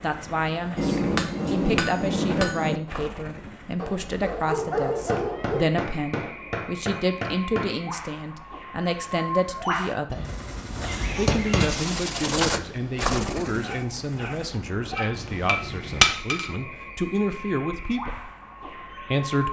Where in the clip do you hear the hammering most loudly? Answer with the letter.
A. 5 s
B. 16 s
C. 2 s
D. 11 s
B.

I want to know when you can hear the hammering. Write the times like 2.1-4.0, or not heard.
0.8-2.8, 5.0-7.7, 10.1-11.7, 14.9-16.5.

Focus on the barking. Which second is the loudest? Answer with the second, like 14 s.
5 s.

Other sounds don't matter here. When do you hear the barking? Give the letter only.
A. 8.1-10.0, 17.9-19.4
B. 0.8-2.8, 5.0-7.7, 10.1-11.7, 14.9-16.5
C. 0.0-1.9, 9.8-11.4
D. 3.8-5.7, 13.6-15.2
D.